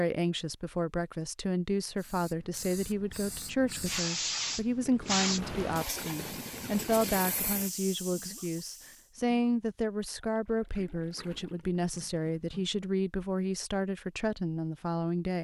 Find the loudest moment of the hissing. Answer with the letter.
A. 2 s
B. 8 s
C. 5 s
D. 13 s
C.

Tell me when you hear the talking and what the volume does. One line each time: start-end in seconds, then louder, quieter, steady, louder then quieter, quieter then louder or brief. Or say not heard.
0.0-15.4 steady.